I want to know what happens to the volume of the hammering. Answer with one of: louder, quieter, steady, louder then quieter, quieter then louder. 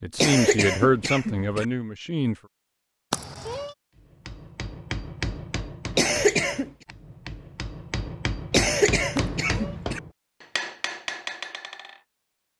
quieter then louder.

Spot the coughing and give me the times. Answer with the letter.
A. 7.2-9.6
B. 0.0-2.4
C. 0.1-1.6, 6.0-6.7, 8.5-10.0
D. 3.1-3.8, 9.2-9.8
C.